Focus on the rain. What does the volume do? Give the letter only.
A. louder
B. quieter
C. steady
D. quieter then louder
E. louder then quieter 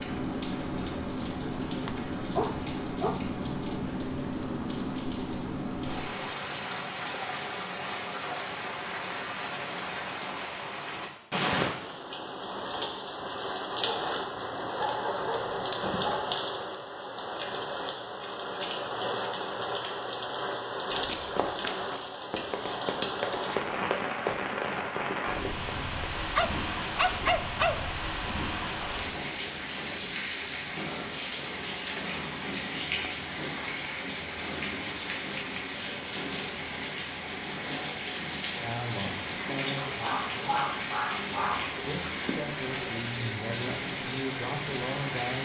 C.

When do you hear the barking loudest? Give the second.
27 s.